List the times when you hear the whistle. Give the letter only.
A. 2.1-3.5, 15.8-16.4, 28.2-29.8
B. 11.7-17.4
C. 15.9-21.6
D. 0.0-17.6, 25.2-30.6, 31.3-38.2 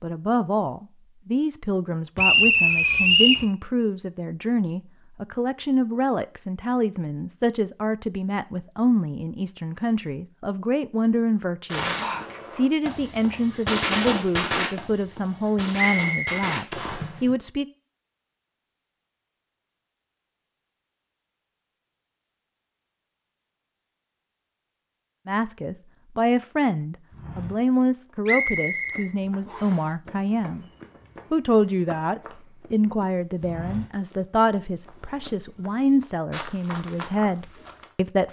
A.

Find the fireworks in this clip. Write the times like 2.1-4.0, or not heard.
11.7-17.4.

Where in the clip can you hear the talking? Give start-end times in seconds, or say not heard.
0.0-17.6, 25.2-30.6, 31.3-38.2.